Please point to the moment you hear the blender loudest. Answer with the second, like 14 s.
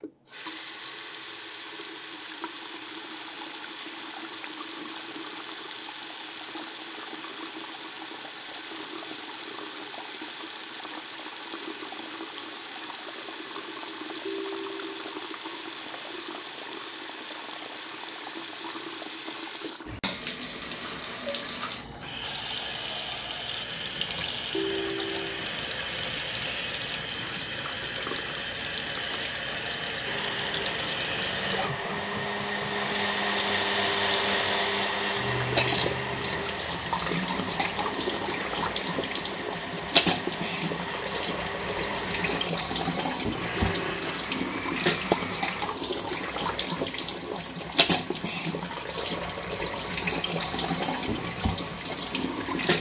34 s.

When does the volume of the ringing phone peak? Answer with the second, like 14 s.
25 s.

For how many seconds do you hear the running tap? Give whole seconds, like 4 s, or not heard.
53 s.